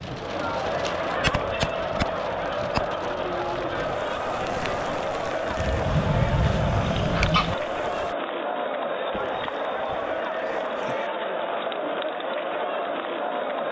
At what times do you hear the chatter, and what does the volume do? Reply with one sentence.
You can hear the chatter from 0.0 to 13.6 s, at a steady volume.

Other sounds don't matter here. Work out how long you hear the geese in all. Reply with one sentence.
You can hear the geese for 6 seconds altogether.